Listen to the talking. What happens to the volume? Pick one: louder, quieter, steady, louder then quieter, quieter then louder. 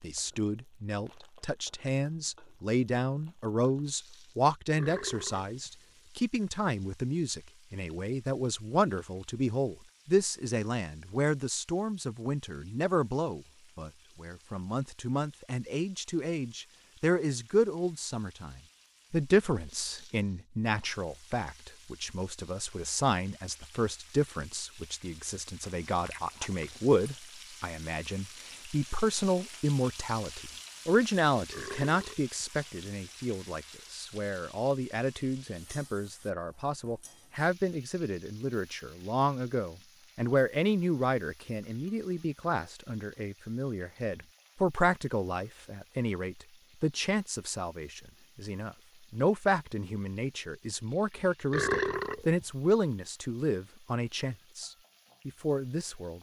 steady.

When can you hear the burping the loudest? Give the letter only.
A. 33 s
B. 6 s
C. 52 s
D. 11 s
C.